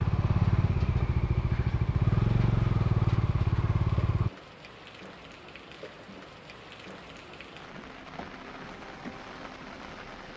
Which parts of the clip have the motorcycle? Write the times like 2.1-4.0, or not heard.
0.0-4.3.